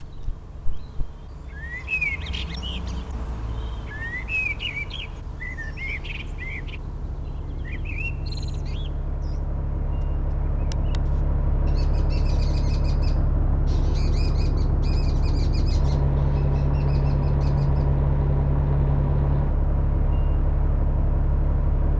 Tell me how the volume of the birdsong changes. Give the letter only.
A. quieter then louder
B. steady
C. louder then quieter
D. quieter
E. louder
D.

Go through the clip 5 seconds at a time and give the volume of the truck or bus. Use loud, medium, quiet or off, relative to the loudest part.
quiet, quiet, medium, loud, medium.